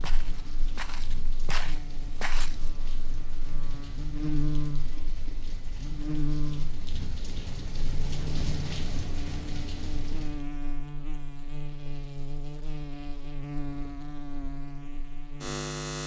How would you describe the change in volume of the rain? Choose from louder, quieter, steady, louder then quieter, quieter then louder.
louder.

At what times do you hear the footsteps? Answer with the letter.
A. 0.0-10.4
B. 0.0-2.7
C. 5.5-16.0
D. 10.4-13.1
B.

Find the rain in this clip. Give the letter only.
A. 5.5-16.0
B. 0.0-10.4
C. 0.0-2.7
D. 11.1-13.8
B.